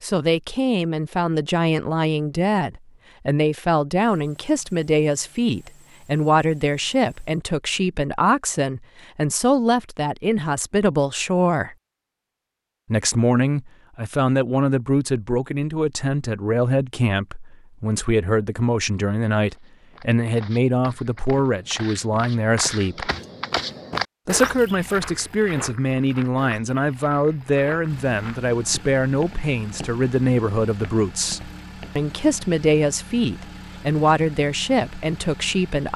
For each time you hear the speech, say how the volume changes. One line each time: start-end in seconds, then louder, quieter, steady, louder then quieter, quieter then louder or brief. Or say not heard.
0.0-11.8 steady
12.9-23.1 steady
24.2-35.9 steady.